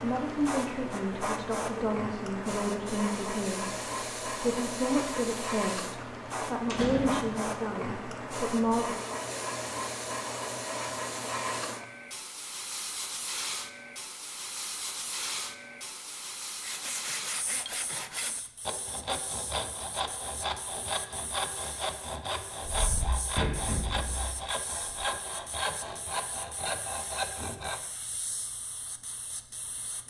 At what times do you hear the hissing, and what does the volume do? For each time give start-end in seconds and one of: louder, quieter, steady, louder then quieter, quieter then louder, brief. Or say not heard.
0.0-30.0 quieter.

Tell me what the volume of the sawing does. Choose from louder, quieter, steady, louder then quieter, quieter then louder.
steady.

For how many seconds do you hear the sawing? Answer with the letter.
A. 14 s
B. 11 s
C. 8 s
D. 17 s
B.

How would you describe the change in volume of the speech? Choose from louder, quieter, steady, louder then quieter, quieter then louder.
steady.